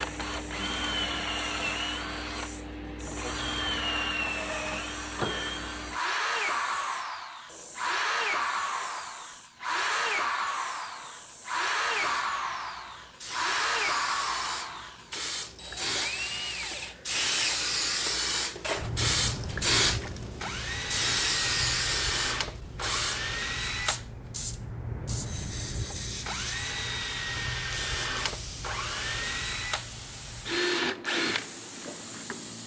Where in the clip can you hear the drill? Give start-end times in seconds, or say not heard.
0.0-32.6.